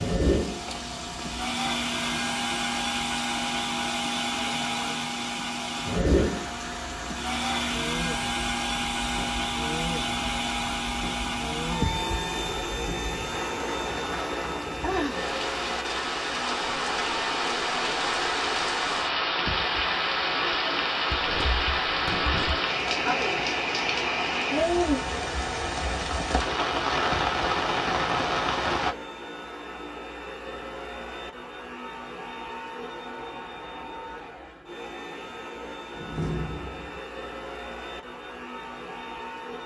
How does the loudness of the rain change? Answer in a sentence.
The volume of the rain goes up.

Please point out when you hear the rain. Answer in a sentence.
The rain can be heard from 0.0 to 28.9 s.